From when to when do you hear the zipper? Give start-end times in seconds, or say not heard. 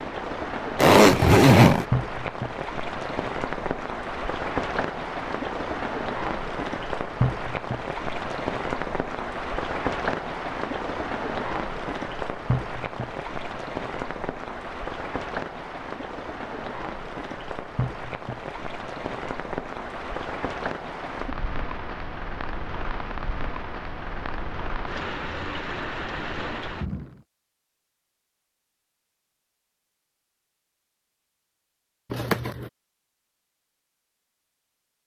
0.8-1.9, 32.1-32.7.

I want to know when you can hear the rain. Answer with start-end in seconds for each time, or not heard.
0.0-27.2.